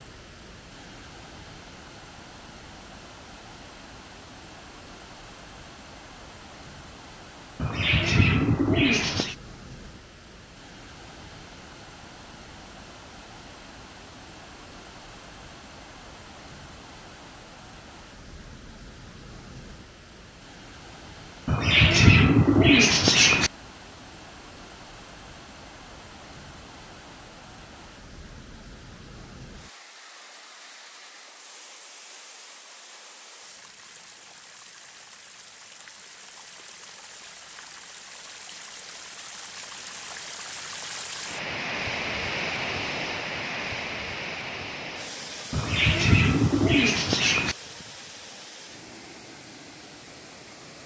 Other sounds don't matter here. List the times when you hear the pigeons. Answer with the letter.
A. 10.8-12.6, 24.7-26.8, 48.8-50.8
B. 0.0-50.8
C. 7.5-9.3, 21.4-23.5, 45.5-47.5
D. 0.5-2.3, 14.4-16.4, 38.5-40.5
C.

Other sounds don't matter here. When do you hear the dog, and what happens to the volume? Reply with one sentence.
You can't hear the dog here.